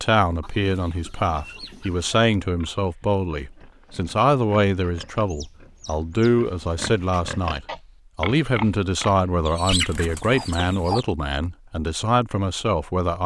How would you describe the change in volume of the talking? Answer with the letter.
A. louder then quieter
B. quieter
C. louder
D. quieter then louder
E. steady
E.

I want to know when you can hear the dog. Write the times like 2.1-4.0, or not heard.
not heard.